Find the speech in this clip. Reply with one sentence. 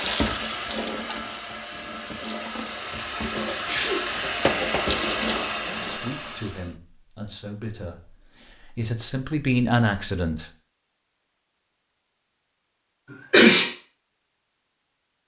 You can hear the speech from 5.8 to 10.5 s.